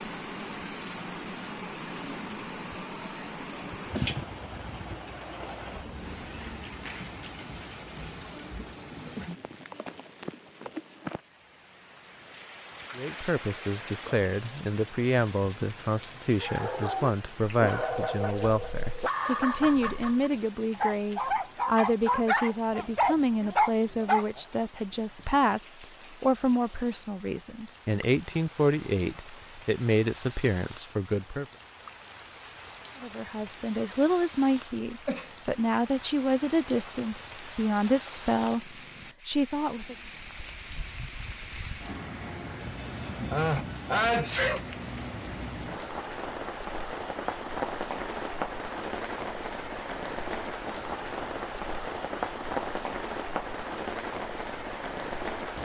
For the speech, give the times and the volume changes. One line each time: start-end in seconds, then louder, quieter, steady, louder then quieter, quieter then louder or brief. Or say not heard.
12.9-31.4 steady
33.0-40.0 steady.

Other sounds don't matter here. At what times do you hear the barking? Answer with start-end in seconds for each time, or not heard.
16.4-24.4.